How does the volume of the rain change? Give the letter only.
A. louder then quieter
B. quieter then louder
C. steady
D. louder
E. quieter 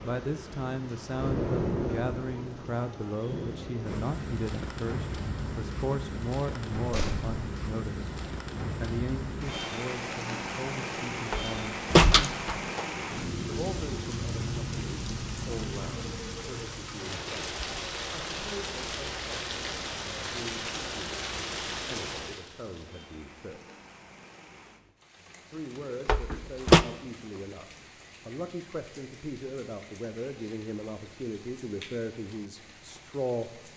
E.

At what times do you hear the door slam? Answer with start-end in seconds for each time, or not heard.
6.8-7.3, 11.3-12.8, 26.1-26.9.